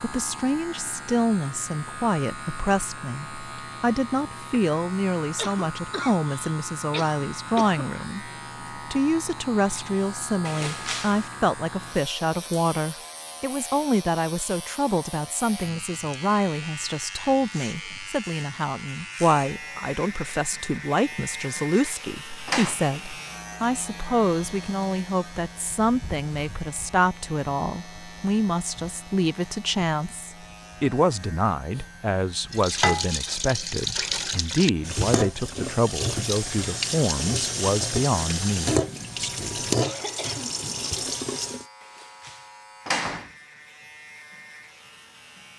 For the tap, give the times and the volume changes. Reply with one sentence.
You can hear the tap from 32.5 to 41.6 s, at a steady volume.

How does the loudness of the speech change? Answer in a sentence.
The volume of the speech stays about the same.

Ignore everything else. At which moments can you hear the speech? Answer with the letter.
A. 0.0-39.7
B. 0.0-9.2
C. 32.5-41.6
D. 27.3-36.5
A.